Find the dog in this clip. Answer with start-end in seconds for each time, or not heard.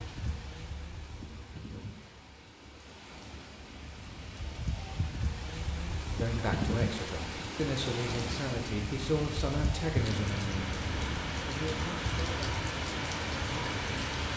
not heard.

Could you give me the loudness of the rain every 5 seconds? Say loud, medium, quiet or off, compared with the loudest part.
medium, loud, loud.